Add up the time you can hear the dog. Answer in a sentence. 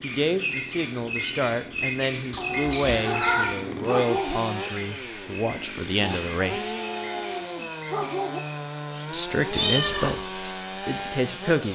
You can hear the dog for 4 seconds altogether.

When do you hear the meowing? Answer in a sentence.
You can hear the meowing from 2.3 to 3.5 s and from 9.5 to 10.2 s.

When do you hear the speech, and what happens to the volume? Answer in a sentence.
You can hear the speech from 0.0 to 6.8 s, at a steady volume; and briefly from 9.1 to 11.7 s.